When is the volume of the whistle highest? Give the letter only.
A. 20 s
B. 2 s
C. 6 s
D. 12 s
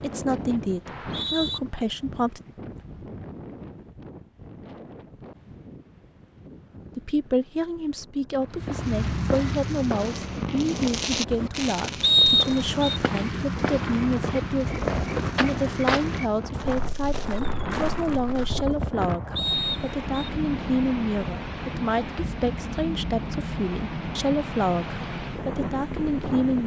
D.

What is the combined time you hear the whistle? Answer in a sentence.
The whistle can be heard for 3 seconds in total.